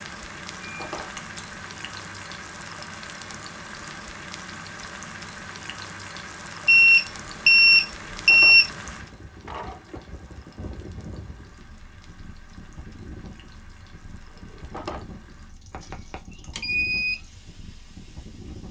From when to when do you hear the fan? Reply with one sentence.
You can hear the fan from 8.6 to 18.6 s.